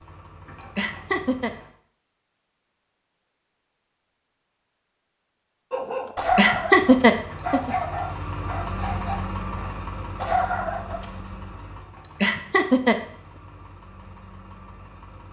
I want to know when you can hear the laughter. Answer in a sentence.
You can hear the laughter from 0.6 to 1.5 s, from 6.2 to 7.7 s and from 12.0 to 12.9 s.